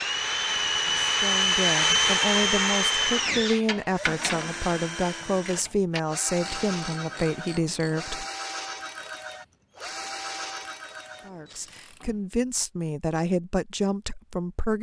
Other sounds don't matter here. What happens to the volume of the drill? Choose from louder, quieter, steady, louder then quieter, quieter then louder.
quieter.